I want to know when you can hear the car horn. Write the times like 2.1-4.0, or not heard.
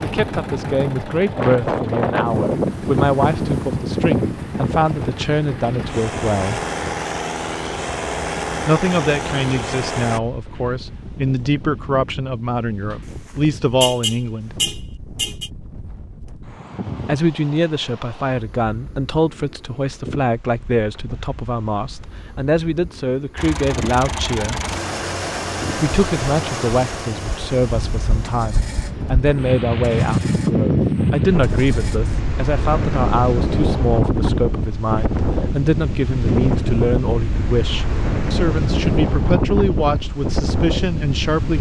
13.1-15.5.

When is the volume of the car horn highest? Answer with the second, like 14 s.
14 s.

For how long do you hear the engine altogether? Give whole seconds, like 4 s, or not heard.
19 s.